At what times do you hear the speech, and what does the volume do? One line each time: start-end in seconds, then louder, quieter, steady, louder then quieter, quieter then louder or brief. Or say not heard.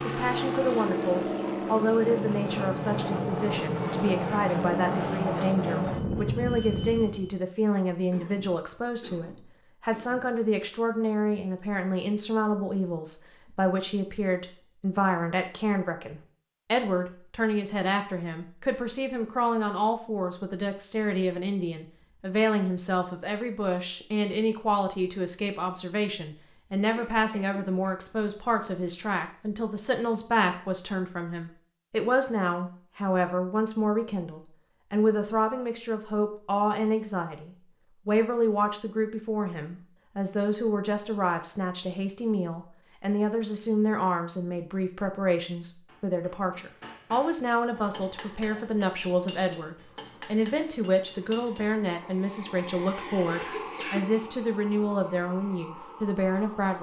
0.0-56.7 steady.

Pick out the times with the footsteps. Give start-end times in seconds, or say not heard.
not heard.